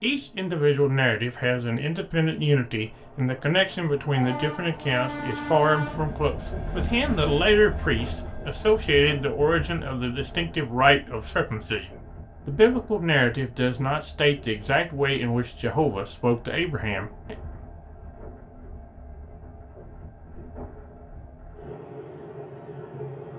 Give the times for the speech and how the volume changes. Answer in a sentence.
The speech can be heard from 0.0 to 17.4 s, at a steady volume.